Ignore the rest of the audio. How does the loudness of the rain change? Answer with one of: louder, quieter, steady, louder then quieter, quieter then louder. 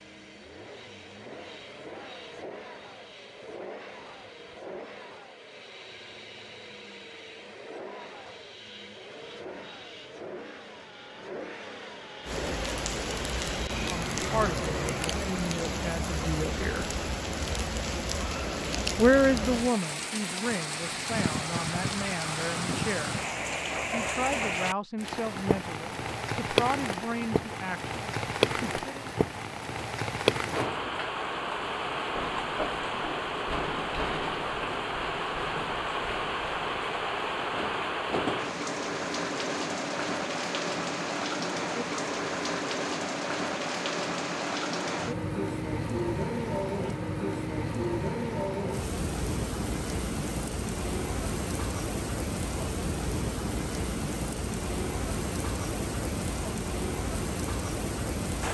steady.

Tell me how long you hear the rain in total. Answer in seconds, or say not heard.
46 s.